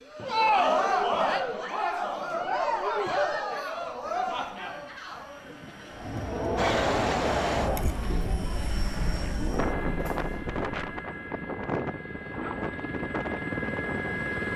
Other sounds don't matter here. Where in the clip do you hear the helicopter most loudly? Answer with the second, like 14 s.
14 s.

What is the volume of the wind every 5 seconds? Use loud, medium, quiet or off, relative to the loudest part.
off, loud, loud.